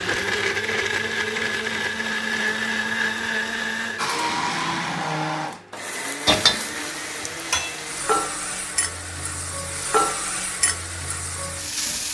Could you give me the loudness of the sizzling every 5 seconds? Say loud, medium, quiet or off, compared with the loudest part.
off, loud, loud.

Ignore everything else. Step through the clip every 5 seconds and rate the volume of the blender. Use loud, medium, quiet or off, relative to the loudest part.
loud, medium, quiet.